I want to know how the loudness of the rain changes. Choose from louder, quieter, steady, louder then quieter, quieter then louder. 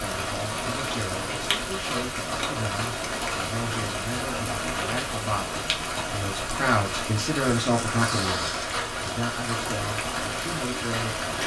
steady.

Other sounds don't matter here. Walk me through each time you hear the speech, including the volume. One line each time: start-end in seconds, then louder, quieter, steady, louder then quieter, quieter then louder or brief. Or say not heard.
0.0-11.3 louder then quieter.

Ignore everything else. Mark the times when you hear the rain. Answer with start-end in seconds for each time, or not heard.
0.0-11.4.